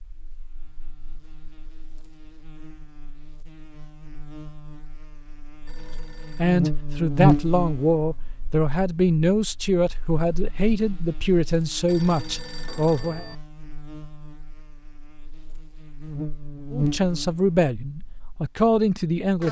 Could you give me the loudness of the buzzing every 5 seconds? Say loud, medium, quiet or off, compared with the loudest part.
quiet, loud, quiet, medium.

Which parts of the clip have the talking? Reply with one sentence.
You can hear the talking from 6.3 to 13.2 s and from 16.7 to 19.4 s.